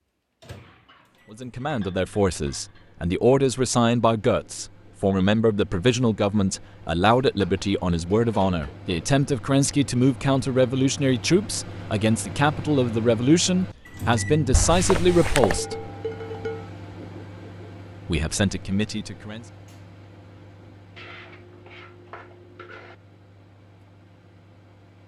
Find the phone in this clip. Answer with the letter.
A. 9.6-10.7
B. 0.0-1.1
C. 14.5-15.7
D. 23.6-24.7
C.